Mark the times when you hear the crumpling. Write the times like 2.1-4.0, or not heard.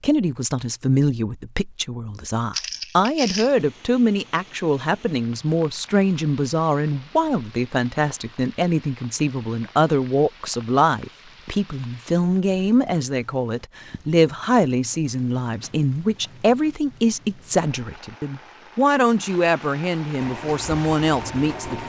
2.5-3.5.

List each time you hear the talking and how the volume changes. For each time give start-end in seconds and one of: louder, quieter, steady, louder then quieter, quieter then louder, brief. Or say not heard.
0.0-21.8 steady.